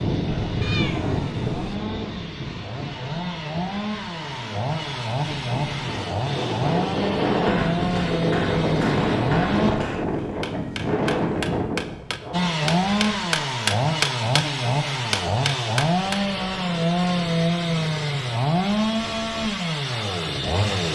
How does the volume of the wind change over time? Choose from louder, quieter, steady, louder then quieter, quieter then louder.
quieter then louder.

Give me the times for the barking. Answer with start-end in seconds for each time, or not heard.
not heard.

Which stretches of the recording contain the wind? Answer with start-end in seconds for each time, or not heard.
0.0-12.5.